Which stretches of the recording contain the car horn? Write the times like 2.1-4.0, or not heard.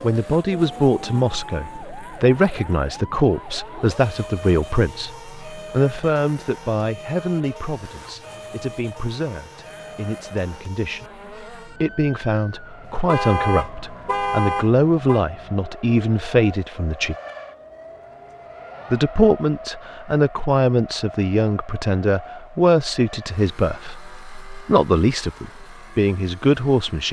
13.1-15.2.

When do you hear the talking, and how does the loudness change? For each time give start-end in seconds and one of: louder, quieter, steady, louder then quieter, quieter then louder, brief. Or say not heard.
0.0-17.1 quieter then louder
18.9-27.0 steady.